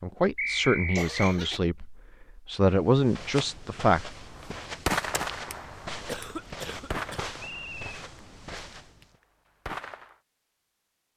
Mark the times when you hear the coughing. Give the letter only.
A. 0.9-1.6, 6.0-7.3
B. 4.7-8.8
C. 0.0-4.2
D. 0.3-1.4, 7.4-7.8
A.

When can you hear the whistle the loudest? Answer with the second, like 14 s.
1 s.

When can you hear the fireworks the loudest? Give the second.
5 s.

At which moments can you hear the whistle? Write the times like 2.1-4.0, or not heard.
0.3-1.4, 7.4-7.8.